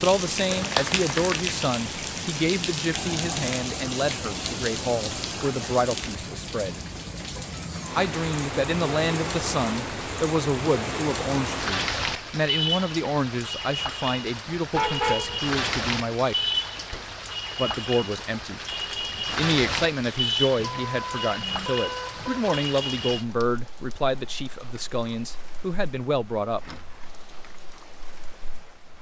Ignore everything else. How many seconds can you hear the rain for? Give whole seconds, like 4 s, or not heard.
29 s.